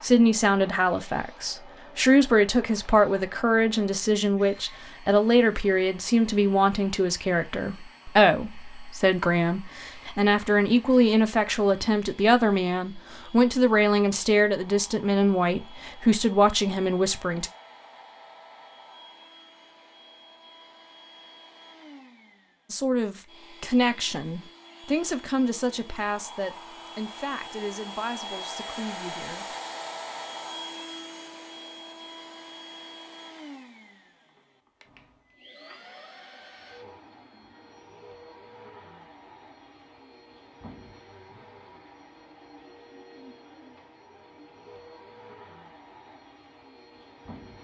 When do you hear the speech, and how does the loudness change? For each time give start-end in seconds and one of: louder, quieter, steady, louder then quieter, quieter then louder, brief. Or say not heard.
0.0-17.5 steady
22.7-29.6 quieter.